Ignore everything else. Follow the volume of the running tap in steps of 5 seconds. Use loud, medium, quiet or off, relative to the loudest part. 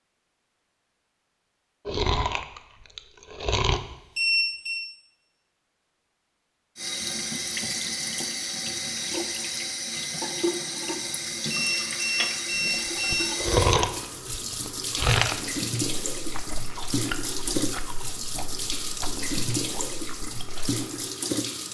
off, loud, loud, loud, loud.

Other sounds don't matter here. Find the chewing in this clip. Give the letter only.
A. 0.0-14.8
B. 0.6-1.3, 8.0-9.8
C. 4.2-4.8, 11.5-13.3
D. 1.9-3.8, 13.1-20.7
D.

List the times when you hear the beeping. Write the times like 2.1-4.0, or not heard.
4.2-4.8, 11.5-13.3.